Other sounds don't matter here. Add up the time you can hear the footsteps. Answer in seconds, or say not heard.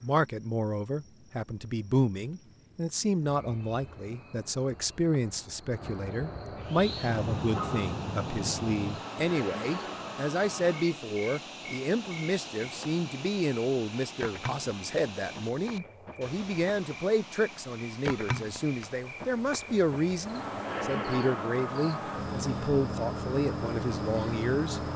not heard.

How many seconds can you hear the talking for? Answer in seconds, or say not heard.
25 s.